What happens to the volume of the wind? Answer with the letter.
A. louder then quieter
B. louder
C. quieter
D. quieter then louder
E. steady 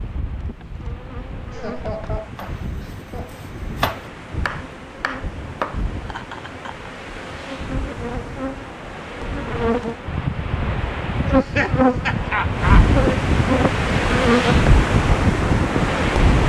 B.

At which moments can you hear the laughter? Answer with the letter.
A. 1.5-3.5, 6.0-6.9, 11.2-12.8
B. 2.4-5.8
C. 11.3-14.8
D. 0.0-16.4
A.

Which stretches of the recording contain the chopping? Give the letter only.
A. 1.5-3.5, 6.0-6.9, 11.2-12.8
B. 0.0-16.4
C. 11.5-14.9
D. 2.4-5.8
D.